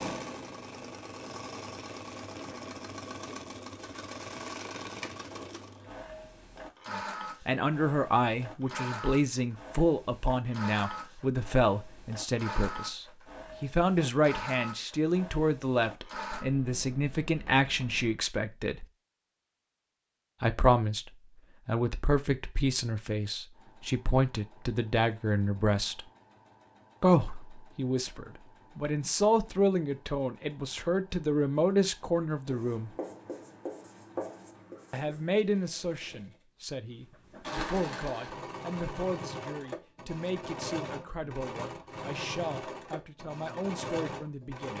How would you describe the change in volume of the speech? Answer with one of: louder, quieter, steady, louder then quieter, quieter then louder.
quieter.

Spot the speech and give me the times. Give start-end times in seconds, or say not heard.
6.9-18.9, 20.4-26.1, 27.0-33.0, 34.9-44.7.